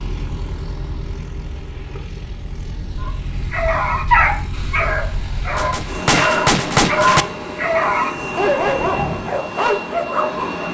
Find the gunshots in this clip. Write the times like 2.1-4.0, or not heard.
5.5-7.2.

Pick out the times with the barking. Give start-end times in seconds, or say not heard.
3.0-10.6.